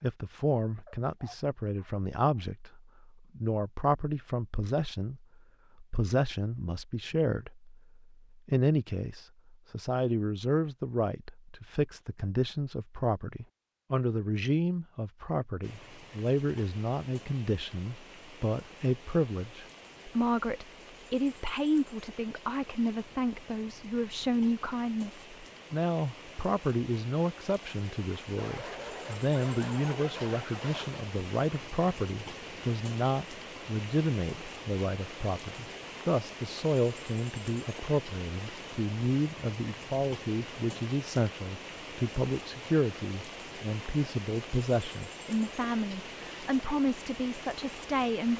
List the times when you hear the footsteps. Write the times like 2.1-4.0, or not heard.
not heard.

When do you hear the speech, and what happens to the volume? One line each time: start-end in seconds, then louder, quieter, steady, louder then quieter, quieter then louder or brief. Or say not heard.
0.0-48.3 steady.